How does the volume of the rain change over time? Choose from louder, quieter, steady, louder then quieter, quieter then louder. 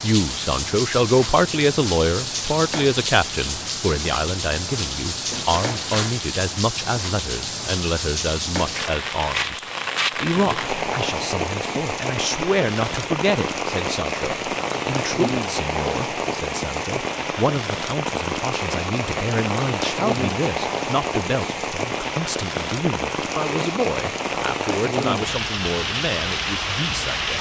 steady.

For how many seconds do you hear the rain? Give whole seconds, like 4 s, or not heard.
27 s.